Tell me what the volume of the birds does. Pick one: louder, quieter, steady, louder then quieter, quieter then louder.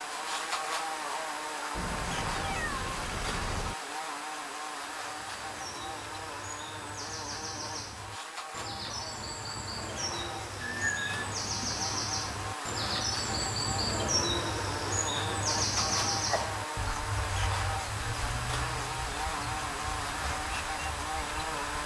louder then quieter.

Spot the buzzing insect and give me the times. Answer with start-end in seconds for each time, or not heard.
0.0-21.8.